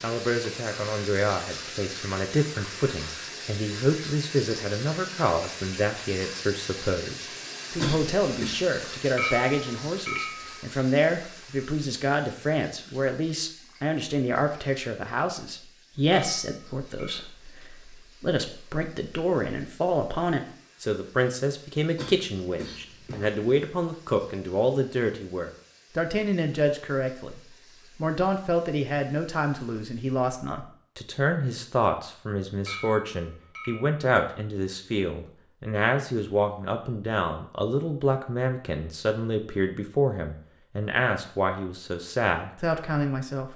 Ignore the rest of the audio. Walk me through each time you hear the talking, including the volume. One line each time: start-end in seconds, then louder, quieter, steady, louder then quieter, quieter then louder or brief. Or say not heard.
0.0-43.5 steady.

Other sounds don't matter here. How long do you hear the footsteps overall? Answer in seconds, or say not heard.
not heard.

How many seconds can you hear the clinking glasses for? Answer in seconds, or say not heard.
4 s.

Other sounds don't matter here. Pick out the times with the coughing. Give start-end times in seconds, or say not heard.
7.8-8.6, 21.9-23.4.